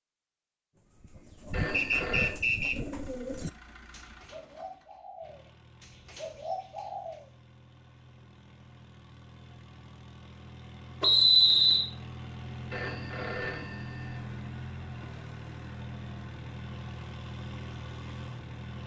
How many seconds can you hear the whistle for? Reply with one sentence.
The whistle can be heard for 2 seconds in total.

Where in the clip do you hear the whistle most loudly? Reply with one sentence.
The loudest moment of the whistle is at 11 seconds.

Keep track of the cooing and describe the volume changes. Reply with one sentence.
The loudness of the cooing goes down, then up.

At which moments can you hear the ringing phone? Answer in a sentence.
The ringing phone can be heard from 1.5 to 2.4 s and from 12.7 to 14.2 s.